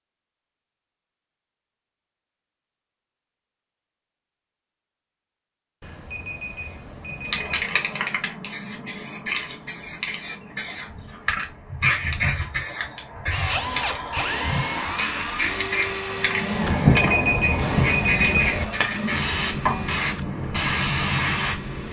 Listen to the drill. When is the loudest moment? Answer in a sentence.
The volume of the drill peaks at 14 seconds.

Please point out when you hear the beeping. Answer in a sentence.
The beeping can be heard from 5.8 to 7.8 s and from 16.6 to 18.7 s.